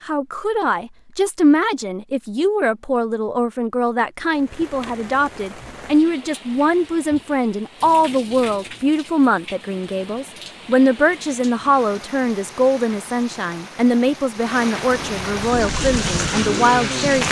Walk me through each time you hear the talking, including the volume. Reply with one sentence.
You can hear the talking from 0.1 to 17.2 s, at a steady volume.